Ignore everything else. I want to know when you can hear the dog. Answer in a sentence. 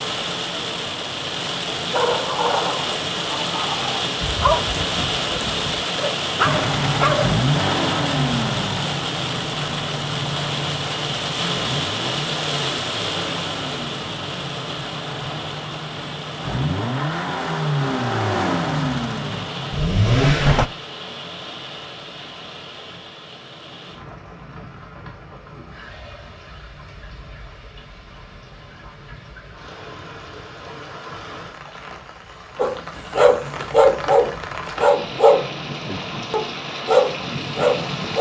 You can hear the dog from 1.9 to 7.3 s and from 32.5 to 38.1 s.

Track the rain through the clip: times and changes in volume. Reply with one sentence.
The rain can be heard from 0.0 to 38.1 s, getting quieter then louder.